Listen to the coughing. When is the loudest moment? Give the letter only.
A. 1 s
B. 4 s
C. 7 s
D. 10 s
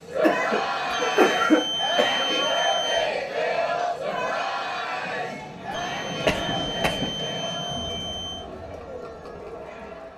A.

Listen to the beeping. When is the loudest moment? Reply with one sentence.
The loudest moment of the beeping is at 2 seconds.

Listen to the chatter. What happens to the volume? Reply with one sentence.
The loudness of the chatter goes down.